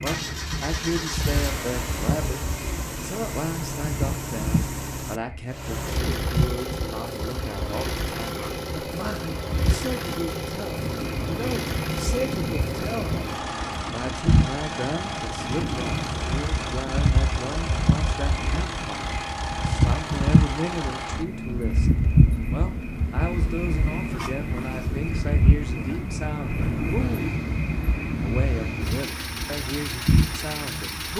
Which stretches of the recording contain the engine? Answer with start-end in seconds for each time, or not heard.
0.0-31.1.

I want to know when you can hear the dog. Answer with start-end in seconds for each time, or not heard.
not heard.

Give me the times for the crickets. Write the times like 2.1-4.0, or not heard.
0.0-31.1.